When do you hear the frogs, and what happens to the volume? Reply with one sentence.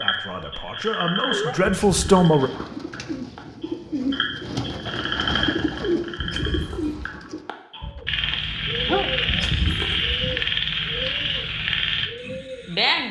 The frogs can be heard from 0.0 to 13.0 s, getting louder.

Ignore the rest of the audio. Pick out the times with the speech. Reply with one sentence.
The speech can be heard from 0.0 to 2.5 s.